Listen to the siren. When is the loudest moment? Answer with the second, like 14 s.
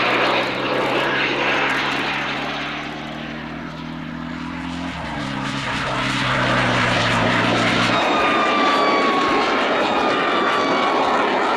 9 s.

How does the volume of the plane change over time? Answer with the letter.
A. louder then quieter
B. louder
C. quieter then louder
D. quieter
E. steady
C.